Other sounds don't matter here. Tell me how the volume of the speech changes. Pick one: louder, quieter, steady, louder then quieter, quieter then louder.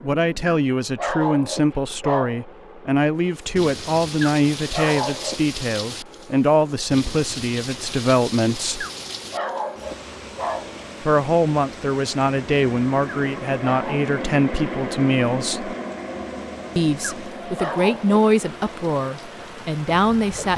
steady.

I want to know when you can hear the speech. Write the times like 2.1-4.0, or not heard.
0.0-8.8, 11.0-15.8, 16.8-20.5.